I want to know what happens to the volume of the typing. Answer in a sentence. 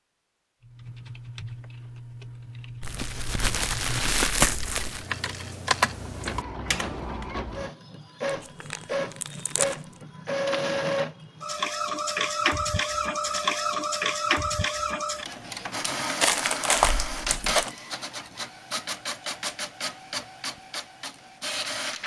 The loudness of the typing goes up.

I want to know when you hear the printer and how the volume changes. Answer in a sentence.
You can hear the printer from 5.8 to 22.0 s, getting louder then quieter.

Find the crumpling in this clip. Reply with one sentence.
You can hear the crumpling from 2.8 to 5.0 s, from 8.2 to 9.8 s and from 16.2 to 17.8 s.